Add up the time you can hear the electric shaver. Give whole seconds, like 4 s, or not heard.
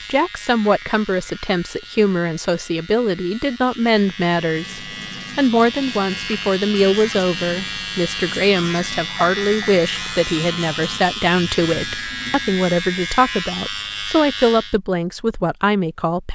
15 s.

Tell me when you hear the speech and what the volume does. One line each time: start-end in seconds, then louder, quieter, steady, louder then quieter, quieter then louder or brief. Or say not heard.
0.1-16.3 steady.